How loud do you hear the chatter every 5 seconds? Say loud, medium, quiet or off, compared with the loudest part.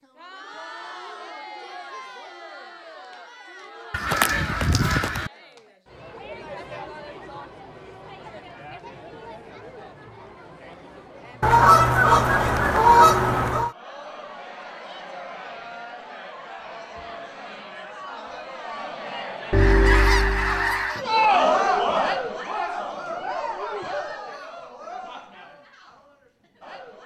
quiet, quiet, quiet, quiet, loud, quiet.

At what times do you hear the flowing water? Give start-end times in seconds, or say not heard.
not heard.